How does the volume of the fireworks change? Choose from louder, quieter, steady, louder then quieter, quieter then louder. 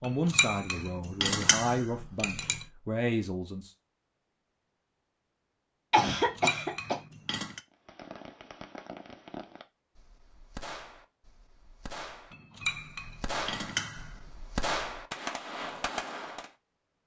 louder.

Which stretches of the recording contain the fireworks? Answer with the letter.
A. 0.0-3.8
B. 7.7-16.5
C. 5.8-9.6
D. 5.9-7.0
B.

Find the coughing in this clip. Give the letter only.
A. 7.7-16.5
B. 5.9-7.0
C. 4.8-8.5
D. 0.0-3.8
B.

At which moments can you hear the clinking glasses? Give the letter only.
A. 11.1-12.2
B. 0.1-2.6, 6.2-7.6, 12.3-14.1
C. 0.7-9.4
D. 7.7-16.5
B.